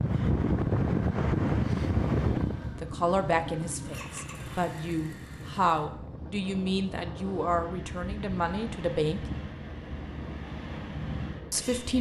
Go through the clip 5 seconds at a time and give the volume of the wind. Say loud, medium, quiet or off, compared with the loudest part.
loud, quiet, quiet.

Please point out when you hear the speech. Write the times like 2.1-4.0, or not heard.
2.8-9.2, 11.5-11.9.